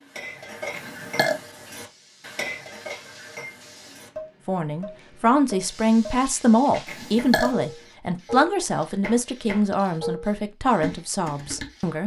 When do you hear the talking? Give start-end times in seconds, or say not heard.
4.5-12.0.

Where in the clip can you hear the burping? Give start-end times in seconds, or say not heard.
0.7-1.4, 6.8-7.5.